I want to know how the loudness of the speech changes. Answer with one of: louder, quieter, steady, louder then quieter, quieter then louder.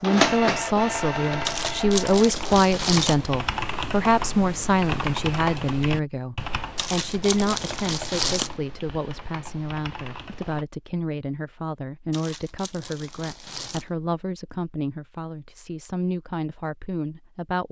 quieter.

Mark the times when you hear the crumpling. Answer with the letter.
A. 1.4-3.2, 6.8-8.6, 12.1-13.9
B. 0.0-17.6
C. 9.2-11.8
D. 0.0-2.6
A.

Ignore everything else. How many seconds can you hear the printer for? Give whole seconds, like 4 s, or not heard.
3 s.